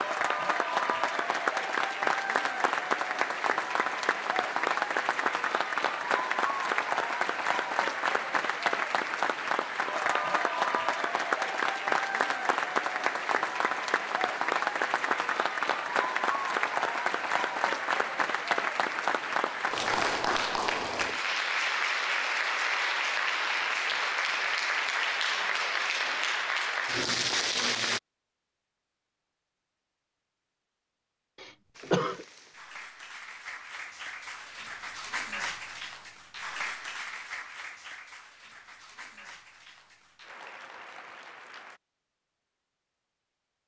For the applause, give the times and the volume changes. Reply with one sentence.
You can hear the applause from 0.0 to 28.0 s, at a steady volume; and from 31.8 to 41.8 s, getting louder then quieter.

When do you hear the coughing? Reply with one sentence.
You can hear the coughing from 31.4 to 32.2 s.